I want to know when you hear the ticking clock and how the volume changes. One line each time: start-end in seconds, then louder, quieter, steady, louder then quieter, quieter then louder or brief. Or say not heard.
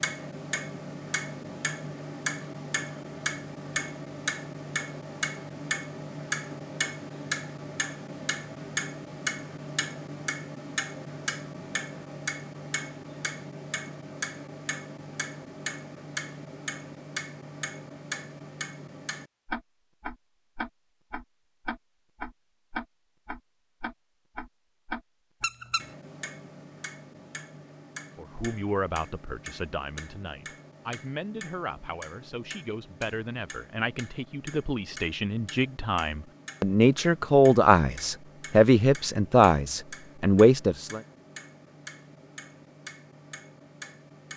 0.0-44.3 quieter.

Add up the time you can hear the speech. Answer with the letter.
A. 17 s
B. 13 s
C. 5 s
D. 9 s
B.